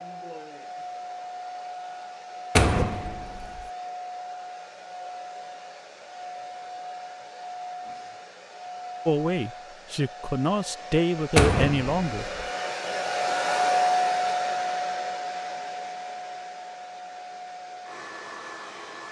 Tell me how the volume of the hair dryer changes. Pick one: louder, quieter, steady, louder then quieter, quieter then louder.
louder then quieter.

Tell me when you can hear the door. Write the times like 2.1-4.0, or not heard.
2.5-3.6, 11.3-12.4.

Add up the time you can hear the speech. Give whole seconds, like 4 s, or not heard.
3 s.